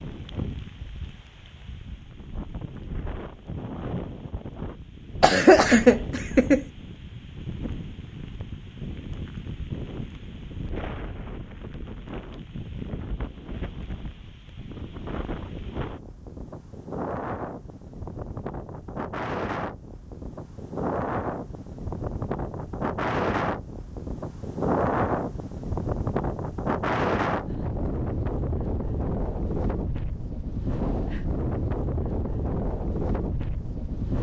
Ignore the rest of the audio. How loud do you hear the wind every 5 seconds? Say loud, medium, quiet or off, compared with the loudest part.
medium, medium, medium, medium, loud, loud, loud.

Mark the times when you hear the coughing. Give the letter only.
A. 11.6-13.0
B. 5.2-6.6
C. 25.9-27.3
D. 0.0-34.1
B.